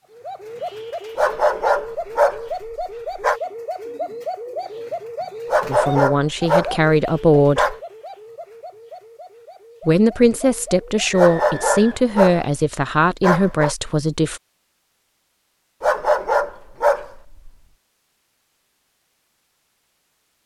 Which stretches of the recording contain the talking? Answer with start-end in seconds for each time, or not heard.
5.7-7.8, 9.8-14.4.